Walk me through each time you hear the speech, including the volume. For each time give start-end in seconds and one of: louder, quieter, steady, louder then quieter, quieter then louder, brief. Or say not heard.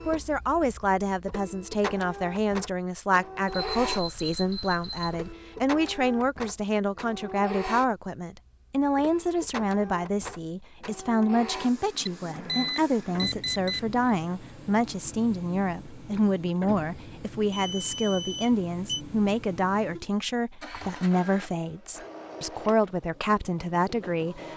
0.1-24.5 steady.